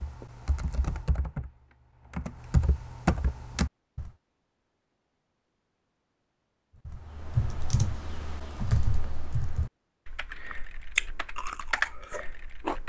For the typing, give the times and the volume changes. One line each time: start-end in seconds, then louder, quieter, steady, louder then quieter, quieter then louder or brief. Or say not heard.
0.0-4.1 louder
6.8-12.8 quieter then louder.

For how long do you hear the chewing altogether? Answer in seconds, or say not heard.
2 s.